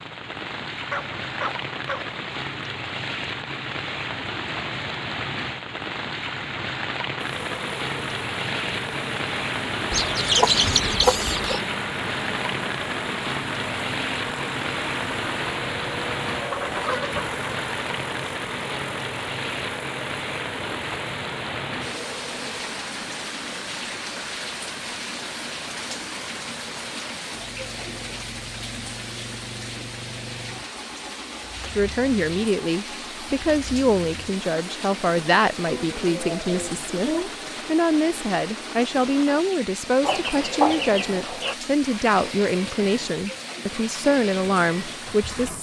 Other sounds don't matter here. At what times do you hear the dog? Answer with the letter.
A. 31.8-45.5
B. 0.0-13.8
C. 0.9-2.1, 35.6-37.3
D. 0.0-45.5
C.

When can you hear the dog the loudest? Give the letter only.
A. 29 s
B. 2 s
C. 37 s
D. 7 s
C.